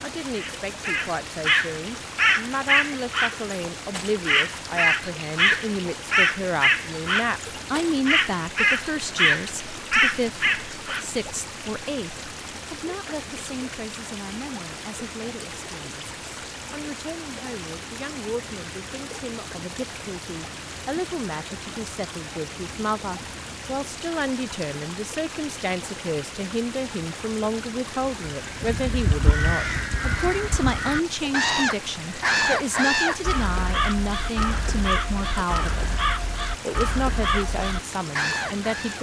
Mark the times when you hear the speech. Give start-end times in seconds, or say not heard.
0.0-36.0, 36.6-38.9.